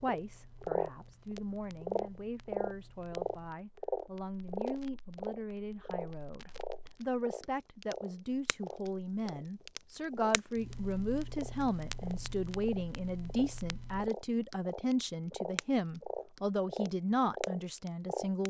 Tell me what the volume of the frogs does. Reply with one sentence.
The loudness of the frogs goes down, then up.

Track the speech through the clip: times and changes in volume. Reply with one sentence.
The speech can be heard from 0.0 to 18.4 s, getting louder.